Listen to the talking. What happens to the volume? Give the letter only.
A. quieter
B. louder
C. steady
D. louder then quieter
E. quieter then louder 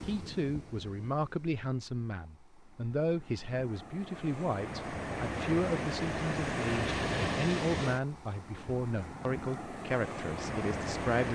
C.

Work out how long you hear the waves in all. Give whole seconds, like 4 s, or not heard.
11 s.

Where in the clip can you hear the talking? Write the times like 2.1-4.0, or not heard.
0.0-11.3.